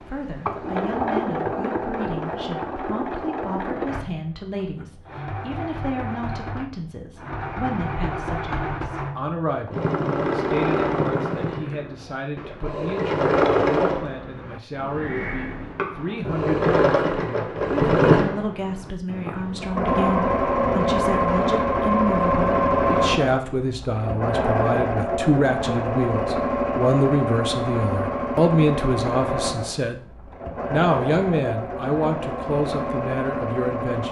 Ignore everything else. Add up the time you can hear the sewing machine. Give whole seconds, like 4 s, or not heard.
34 s.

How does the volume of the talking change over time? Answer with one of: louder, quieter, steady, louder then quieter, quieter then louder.
louder.